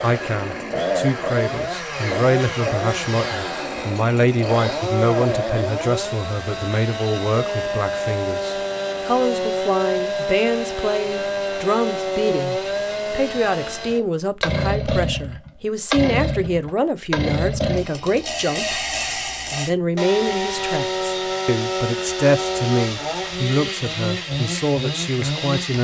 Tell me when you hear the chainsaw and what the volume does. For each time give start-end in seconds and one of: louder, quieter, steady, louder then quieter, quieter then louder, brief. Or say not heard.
0.0-25.7 steady.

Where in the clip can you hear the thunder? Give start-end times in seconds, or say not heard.
not heard.